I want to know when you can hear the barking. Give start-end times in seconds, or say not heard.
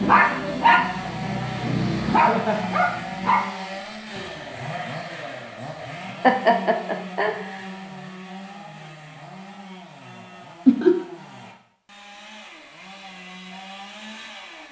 0.0-3.5.